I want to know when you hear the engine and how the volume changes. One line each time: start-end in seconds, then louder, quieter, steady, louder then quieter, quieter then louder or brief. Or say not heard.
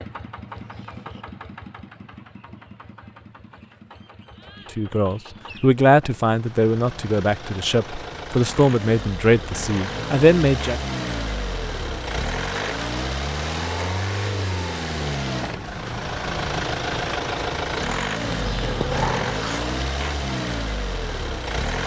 0.0-21.8 louder.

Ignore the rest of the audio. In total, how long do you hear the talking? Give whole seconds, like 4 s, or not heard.
6 s.